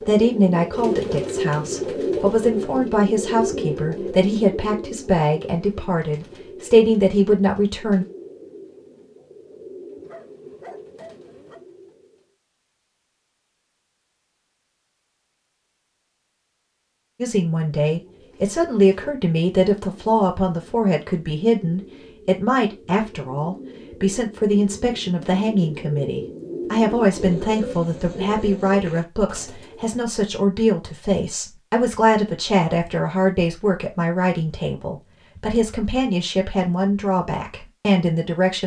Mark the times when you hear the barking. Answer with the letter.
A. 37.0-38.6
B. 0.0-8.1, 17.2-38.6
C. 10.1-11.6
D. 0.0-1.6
C.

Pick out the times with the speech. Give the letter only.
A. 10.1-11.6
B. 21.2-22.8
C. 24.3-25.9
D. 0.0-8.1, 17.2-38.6
D.